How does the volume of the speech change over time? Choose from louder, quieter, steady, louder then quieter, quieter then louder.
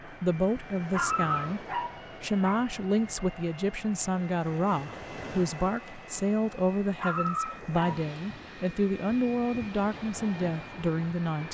steady.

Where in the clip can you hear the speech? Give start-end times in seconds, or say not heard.
0.1-11.4.